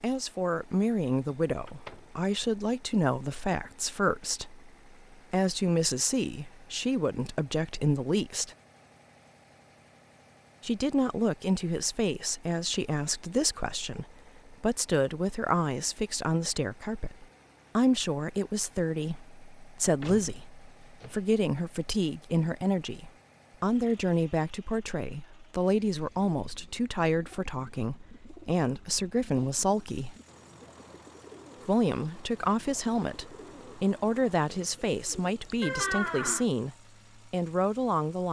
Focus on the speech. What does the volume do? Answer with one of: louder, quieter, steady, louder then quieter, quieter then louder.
steady.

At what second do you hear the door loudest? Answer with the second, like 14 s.
36 s.